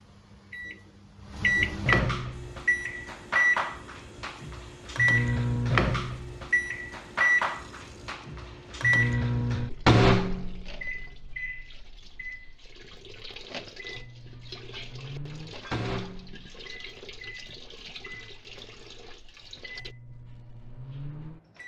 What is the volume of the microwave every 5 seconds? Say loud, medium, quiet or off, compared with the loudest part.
loud, loud, medium, quiet, quiet.